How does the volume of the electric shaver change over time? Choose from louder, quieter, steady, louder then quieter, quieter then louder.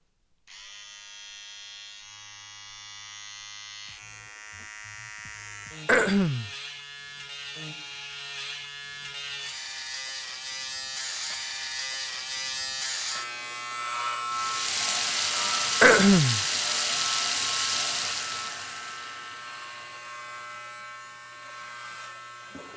louder then quieter.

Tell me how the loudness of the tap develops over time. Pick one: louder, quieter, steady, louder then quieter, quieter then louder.
quieter.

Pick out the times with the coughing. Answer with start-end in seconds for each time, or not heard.
5.8-6.5, 15.8-16.4.